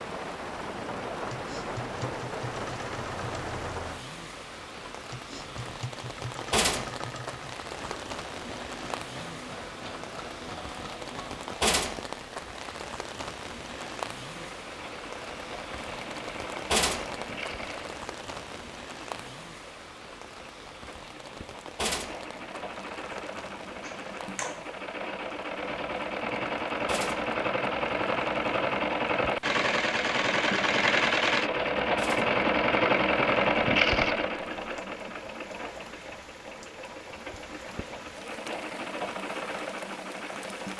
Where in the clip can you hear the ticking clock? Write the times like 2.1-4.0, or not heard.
not heard.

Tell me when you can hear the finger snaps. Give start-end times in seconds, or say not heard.
23.8-24.6.